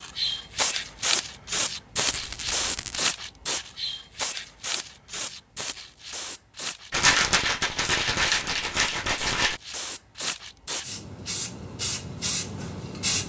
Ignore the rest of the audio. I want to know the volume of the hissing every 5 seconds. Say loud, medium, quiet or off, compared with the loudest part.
loud, medium, loud.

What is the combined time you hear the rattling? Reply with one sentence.
The rattling can be heard for 4 seconds in total.